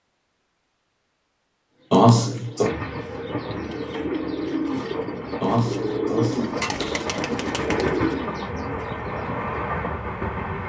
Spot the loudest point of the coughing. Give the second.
2 s.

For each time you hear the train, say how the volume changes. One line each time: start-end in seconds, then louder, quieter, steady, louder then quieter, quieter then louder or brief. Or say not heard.
2.6-10.6 louder.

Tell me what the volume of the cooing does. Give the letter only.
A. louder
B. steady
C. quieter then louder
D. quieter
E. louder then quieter
A.